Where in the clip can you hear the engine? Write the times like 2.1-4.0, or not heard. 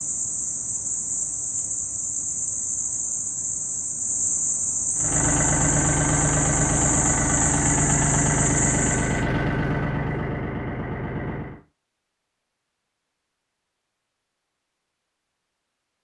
5.0-11.6.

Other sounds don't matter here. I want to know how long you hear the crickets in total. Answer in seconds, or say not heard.
9 s.